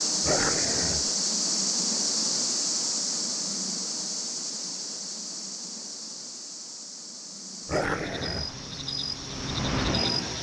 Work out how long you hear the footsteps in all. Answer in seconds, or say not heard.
not heard.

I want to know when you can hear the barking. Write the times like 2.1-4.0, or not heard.
0.2-1.1, 7.7-8.6.